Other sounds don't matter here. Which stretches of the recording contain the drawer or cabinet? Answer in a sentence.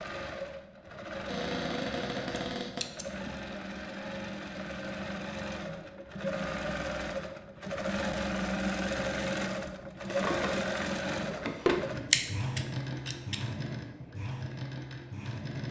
The drawer or cabinet can be heard from 1.2 to 2.9 s and from 10.1 to 11.8 s.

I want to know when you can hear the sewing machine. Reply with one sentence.
You can hear the sewing machine from 0.0 to 15.6 s.